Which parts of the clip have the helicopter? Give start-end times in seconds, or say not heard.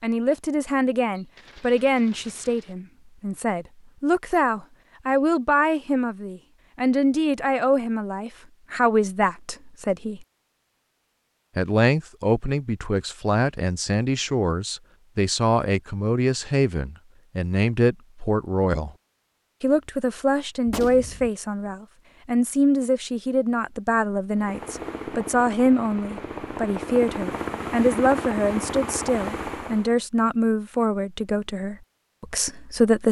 24.4-29.9.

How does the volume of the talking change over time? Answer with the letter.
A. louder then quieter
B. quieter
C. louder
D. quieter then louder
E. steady
E.